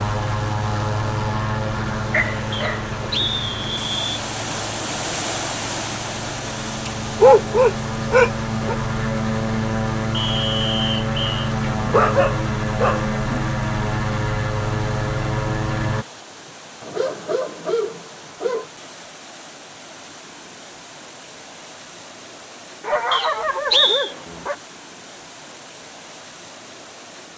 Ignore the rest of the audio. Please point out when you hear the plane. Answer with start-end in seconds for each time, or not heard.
0.0-16.1.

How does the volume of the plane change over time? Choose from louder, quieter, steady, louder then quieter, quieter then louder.
quieter then louder.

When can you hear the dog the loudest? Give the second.
7 s.